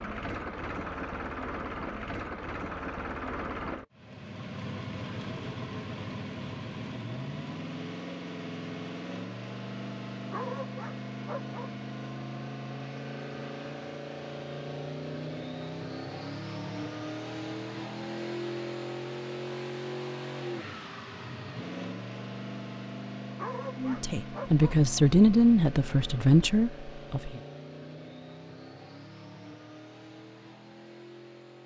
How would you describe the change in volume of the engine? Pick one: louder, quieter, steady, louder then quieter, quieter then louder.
quieter.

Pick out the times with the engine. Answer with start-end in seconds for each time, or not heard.
0.0-31.6.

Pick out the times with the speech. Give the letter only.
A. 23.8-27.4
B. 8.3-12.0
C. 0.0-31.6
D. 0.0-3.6
A.